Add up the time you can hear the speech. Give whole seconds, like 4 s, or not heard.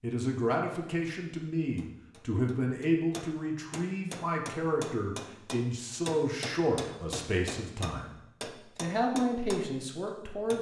10 s.